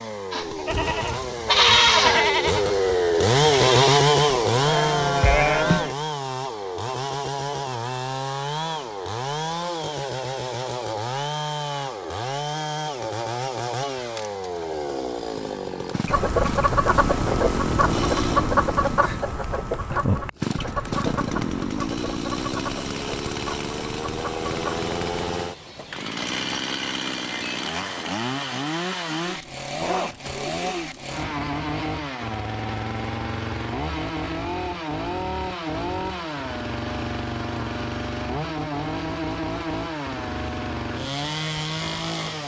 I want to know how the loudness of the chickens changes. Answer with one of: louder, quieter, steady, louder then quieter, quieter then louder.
quieter.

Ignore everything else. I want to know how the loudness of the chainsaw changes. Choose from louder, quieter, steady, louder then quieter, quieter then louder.
quieter.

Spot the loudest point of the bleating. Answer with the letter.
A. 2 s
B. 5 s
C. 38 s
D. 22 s
A.